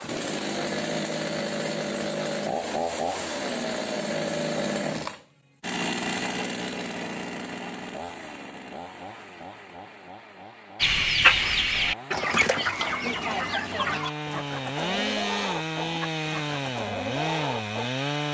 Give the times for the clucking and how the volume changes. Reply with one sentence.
You can hear the clucking from 10.8 to 17.9 s, getting quieter.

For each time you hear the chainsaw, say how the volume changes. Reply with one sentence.
The chainsaw can be heard from 0.0 to 18.2 s, getting quieter then louder.